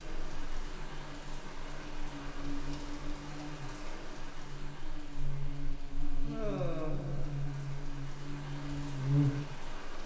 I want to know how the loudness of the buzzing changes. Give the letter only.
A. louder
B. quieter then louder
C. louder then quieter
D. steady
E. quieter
A.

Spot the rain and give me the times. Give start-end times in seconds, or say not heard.
0.0-10.0.